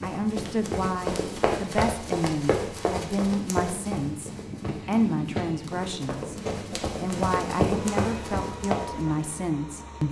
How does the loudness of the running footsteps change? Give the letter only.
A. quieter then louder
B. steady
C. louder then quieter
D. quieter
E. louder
A.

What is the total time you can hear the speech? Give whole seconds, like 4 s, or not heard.
10 s.